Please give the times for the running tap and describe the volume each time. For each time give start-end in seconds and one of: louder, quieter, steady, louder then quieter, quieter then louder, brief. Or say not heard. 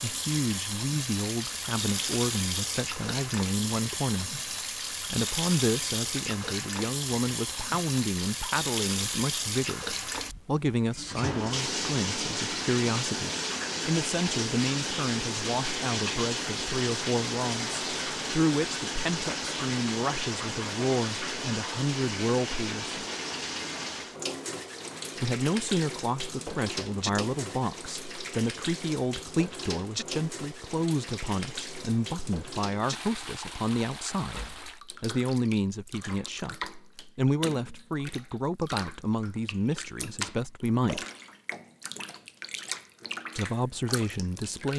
0.0-44.7 quieter.